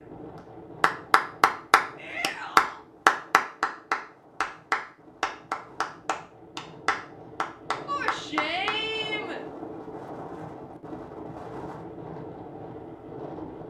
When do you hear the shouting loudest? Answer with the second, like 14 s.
9 s.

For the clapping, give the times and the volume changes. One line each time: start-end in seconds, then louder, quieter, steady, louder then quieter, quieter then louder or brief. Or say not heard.
0.8-8.8 quieter.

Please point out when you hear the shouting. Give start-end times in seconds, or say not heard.
1.9-2.8, 7.8-9.4.